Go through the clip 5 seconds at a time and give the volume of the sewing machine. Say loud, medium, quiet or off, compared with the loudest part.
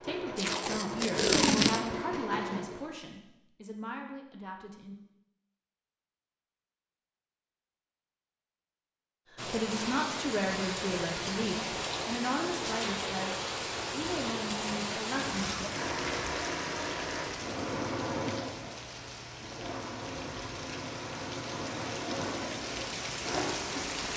loud, off, off, loud, loud.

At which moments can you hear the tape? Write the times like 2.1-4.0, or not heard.
0.3-1.9.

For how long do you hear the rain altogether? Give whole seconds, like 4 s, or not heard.
15 s.